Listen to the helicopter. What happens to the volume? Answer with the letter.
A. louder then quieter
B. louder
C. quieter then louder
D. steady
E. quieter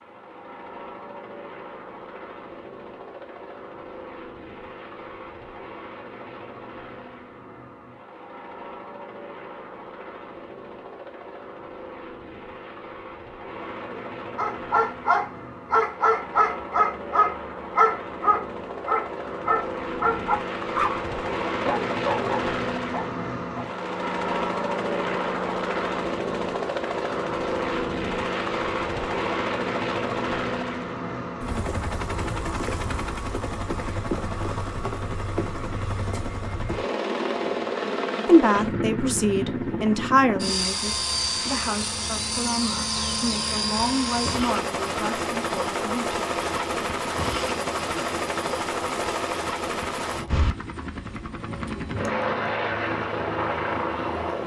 B.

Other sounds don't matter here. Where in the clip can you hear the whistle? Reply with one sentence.
The whistle can't be heard in this clip.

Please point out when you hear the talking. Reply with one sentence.
You can hear the talking from 38.2 to 46.2 s.